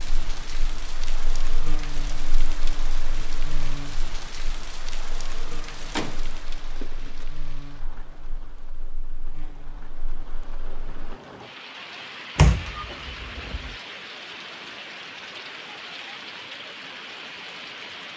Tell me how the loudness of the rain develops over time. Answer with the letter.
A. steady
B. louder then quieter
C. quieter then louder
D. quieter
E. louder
C.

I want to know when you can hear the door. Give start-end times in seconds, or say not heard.
5.5-7.2, 12.3-13.8.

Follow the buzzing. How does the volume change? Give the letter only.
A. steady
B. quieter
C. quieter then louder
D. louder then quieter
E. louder
B.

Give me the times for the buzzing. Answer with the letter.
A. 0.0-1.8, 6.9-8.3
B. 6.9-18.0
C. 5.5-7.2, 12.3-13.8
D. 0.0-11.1
D.